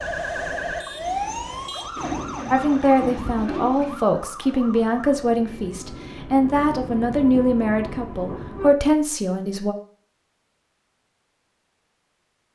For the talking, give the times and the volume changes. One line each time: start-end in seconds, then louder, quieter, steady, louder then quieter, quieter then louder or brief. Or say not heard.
2.5-9.8 steady.